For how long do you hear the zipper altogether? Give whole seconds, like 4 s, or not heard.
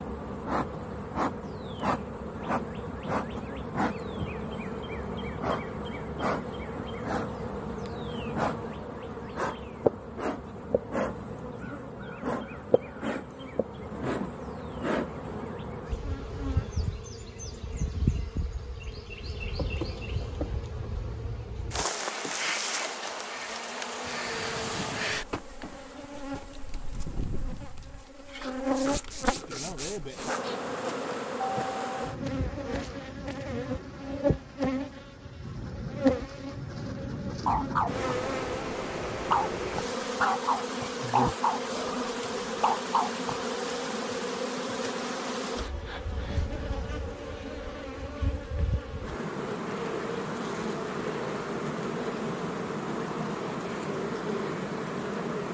2 s.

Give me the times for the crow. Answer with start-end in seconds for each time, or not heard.
not heard.